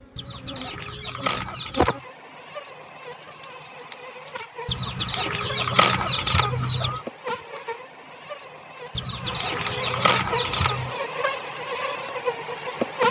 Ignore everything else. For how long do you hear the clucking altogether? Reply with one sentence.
You can hear the clucking for 6 seconds altogether.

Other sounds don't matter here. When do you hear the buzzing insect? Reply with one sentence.
You can hear the buzzing insect from 0.0 to 13.0 s.